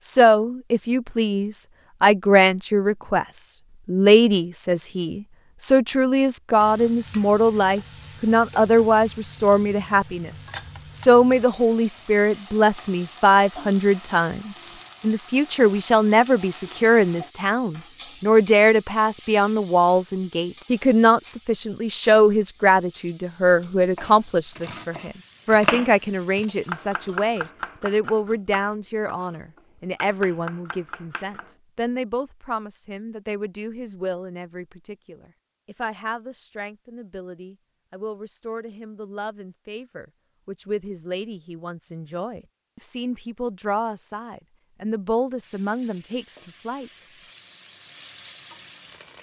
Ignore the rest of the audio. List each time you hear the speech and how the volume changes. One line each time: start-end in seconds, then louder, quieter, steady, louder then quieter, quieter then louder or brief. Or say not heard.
0.1-46.9 quieter.